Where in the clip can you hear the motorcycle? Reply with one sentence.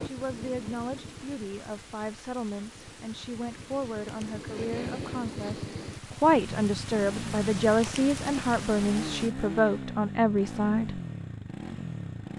The motorcycle can be heard from 0.0 to 12.3 s.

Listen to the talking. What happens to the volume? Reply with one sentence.
The volume of the talking goes up.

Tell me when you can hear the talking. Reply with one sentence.
You can hear the talking from 0.1 to 11.0 s.